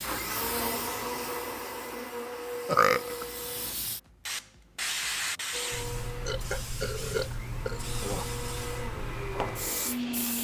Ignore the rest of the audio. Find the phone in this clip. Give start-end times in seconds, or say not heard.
not heard.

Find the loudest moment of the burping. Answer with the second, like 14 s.
3 s.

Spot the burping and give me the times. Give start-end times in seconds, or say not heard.
2.6-3.2, 6.2-8.2.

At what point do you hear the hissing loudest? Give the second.
5 s.